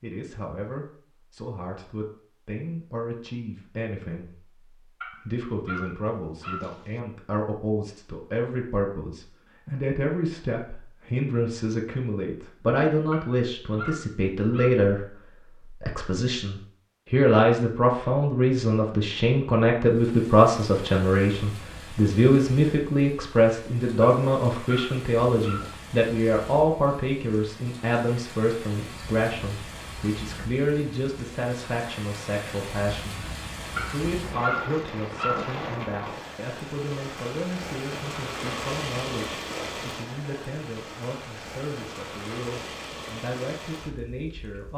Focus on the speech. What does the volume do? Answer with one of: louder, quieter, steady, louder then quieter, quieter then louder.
louder then quieter.